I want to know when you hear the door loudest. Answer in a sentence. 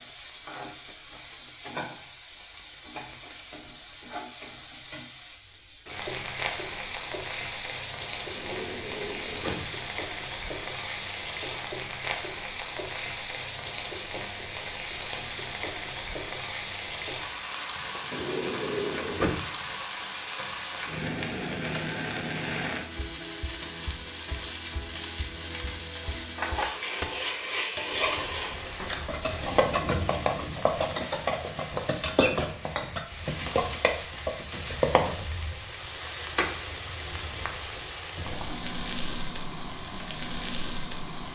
The loudest moment of the door is at 19 seconds.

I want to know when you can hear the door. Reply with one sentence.
The door can be heard from 8.2 to 9.7 s, from 17.9 to 19.5 s and from 27.9 to 29.1 s.